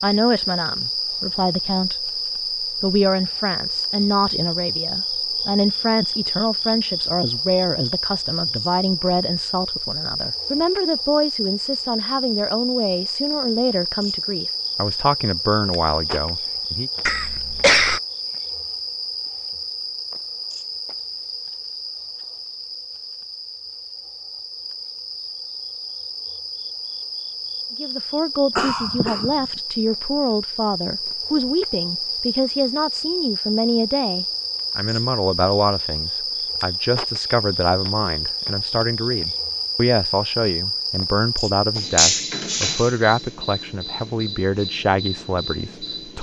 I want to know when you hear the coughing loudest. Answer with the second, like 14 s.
18 s.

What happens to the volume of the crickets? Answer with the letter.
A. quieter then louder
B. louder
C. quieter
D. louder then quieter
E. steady
A.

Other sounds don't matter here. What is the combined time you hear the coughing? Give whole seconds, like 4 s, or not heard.
2 s.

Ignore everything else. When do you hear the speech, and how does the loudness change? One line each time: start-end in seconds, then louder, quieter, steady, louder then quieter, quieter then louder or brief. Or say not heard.
0.0-16.9 steady
27.8-46.1 steady.